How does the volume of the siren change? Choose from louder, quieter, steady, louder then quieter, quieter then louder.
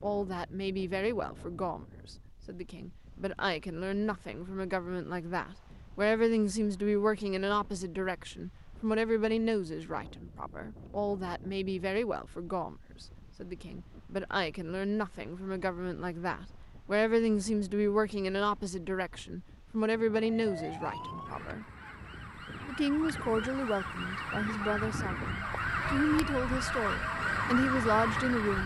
louder.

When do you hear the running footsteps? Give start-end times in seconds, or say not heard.
not heard.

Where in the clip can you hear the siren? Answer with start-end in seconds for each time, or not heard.
20.2-28.6.